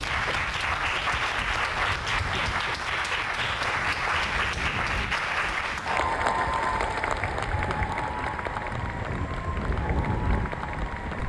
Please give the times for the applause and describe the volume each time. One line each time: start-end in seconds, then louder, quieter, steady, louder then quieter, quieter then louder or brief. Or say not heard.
0.0-11.2 quieter.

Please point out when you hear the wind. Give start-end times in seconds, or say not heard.
0.0-11.2.